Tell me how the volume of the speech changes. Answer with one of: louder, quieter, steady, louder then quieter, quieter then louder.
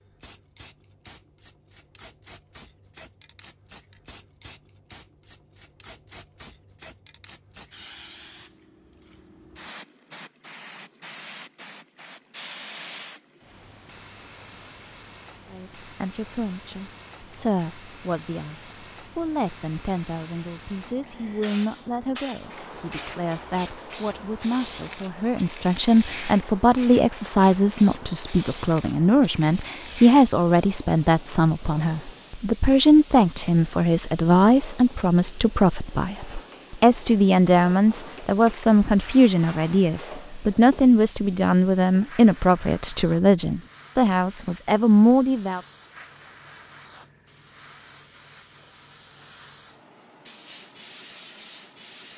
louder.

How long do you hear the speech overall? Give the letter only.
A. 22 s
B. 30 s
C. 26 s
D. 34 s
B.